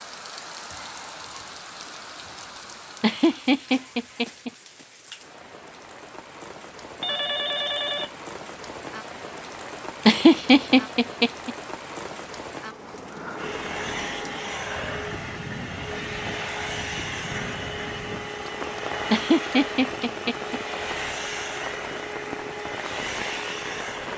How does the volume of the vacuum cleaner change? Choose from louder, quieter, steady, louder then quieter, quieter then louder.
steady.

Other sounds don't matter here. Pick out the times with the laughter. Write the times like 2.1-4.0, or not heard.
3.0-4.5, 10.1-11.5, 19.1-20.6.